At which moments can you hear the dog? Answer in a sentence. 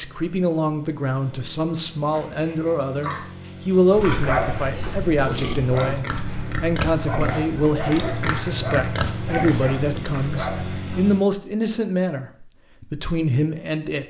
The dog can be heard from 3.9 to 11.0 s.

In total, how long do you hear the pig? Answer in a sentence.
You can hear the pig for 8 seconds altogether.